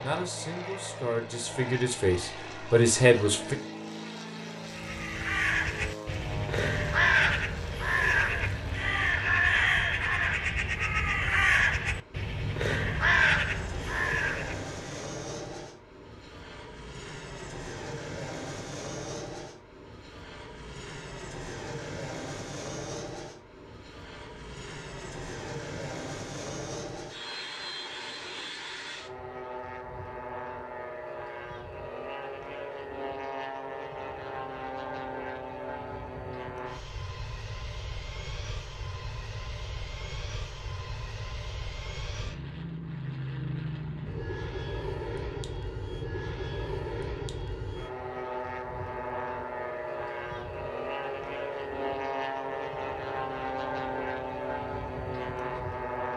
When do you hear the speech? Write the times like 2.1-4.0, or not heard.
0.0-3.5.